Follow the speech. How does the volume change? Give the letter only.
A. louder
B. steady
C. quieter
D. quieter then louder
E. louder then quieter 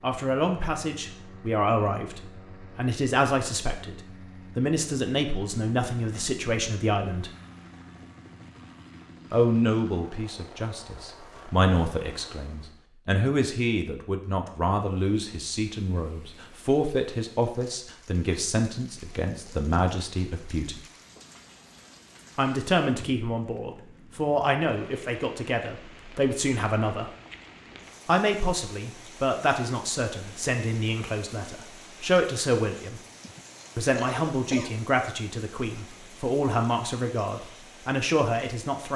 B.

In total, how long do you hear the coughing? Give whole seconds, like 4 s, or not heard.
2 s.